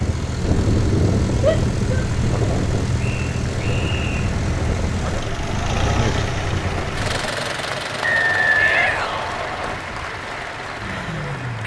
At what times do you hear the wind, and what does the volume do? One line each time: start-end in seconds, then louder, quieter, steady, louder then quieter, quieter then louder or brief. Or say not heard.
0.0-7.3 quieter.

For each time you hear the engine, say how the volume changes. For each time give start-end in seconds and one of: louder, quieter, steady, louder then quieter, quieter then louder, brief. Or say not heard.
0.0-11.6 quieter.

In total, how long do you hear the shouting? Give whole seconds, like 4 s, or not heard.
2 s.